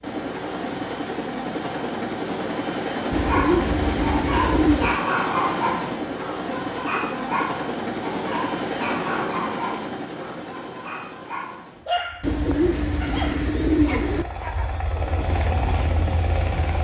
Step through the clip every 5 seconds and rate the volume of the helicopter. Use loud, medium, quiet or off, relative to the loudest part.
loud, loud, medium, loud.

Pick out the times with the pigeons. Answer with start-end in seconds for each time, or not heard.
3.1-5.0, 12.2-14.2.